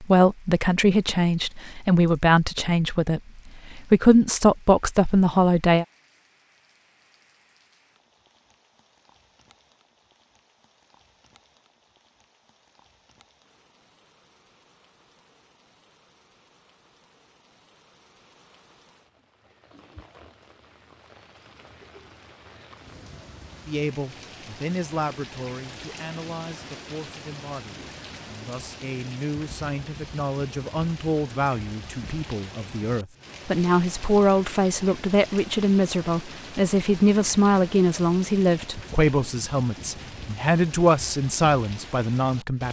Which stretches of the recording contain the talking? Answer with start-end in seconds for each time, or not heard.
0.0-5.8, 23.6-42.6.